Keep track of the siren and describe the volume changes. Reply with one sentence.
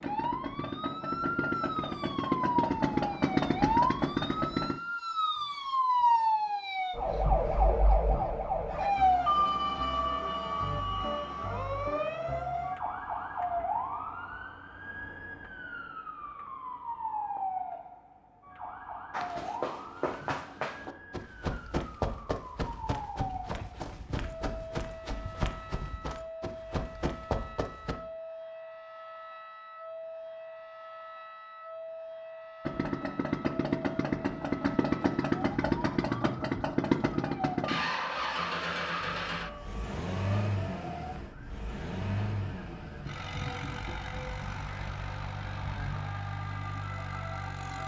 The volume of the siren goes down.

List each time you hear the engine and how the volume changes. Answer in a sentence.
You can hear the engine from 0.0 to 4.8 s, getting louder; and from 32.6 to 47.8 s, getting quieter.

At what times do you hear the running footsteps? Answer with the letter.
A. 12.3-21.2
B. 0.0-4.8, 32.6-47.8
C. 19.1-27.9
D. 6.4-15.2
C.